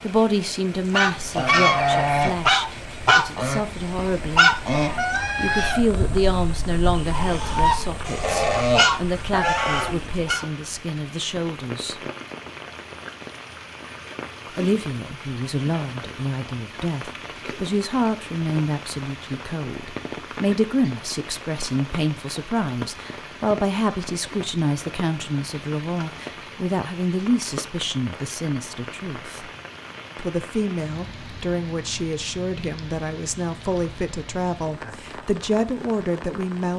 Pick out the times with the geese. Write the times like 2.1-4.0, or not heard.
0.9-10.4.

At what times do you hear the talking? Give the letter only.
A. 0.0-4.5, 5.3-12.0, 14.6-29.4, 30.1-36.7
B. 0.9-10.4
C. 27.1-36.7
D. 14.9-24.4
A.